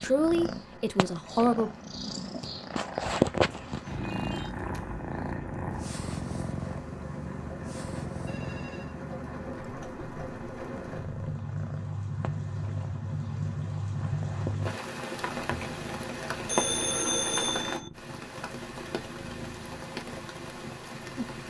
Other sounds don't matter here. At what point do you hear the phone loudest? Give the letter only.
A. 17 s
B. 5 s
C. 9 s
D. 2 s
A.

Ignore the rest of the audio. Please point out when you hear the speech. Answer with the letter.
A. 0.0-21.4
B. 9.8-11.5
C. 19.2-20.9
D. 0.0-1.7
D.